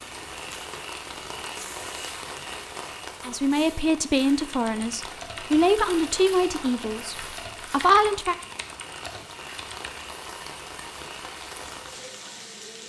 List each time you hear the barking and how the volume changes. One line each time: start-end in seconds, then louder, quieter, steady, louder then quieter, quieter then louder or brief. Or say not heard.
not heard.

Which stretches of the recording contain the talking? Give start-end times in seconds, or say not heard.
3.2-8.3.